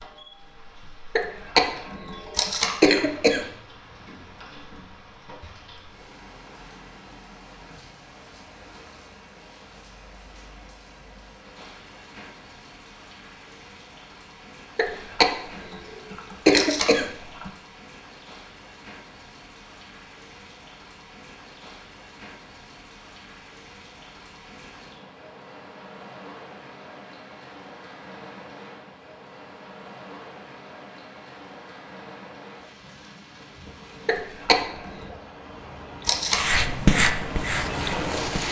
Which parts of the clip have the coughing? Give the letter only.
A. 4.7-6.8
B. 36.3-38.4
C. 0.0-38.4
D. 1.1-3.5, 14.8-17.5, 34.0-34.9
D.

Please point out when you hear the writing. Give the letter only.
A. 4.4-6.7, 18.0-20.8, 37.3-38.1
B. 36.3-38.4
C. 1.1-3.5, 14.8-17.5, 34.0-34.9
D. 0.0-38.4
B.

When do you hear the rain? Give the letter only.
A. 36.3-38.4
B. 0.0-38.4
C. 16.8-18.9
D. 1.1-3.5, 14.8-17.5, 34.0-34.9
B.